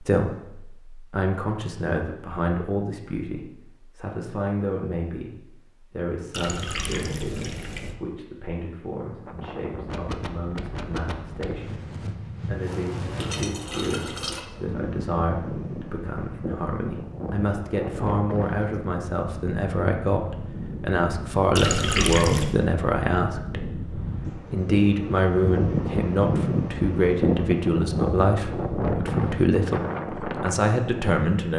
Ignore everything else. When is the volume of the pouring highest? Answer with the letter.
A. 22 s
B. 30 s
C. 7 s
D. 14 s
A.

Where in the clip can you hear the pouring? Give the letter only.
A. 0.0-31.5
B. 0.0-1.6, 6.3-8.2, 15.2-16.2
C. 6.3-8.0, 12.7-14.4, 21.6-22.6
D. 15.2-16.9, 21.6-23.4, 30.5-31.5
C.